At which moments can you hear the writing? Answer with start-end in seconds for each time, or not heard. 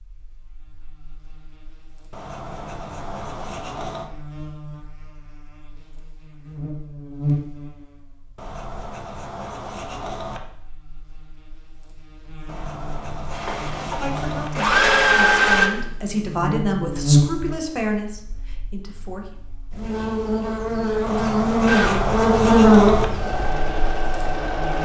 2.1-4.1, 8.3-10.4, 12.4-14.5, 21.1-23.1.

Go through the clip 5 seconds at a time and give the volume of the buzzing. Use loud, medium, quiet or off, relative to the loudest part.
quiet, quiet, quiet, medium, loud.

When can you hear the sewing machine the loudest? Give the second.
15 s.